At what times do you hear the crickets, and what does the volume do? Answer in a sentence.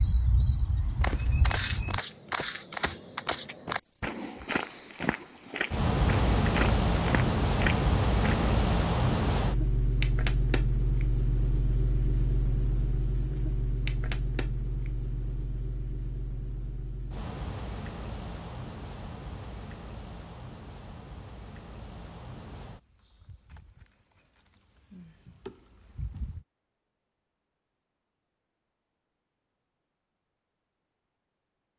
The crickets can be heard from 0.0 to 26.4 s, getting quieter.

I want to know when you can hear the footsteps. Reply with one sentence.
The footsteps can be heard from 1.0 to 8.5 s.